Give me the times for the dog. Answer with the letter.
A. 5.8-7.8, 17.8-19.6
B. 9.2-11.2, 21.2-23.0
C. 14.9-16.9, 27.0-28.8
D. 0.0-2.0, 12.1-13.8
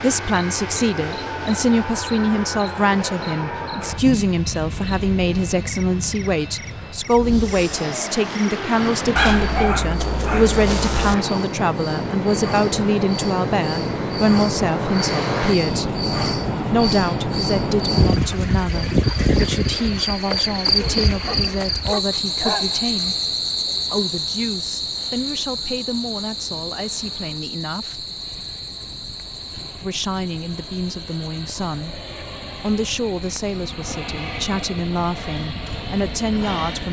B.